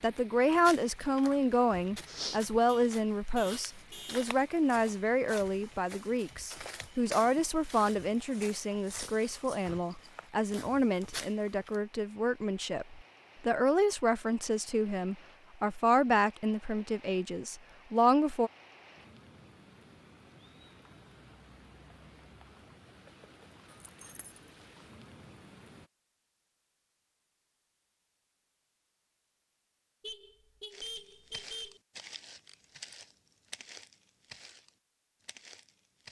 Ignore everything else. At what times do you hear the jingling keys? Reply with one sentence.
The jingling keys can be heard from 23.6 to 24.5 s.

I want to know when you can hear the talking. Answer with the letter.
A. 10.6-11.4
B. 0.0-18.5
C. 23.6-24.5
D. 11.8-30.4
B.